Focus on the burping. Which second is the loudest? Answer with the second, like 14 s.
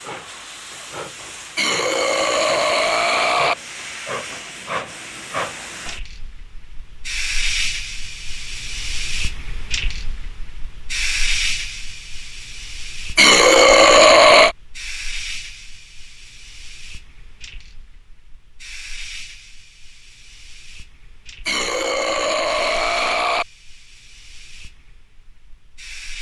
14 s.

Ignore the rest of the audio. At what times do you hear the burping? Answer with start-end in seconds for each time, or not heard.
1.6-3.5, 13.2-14.6, 21.4-23.4.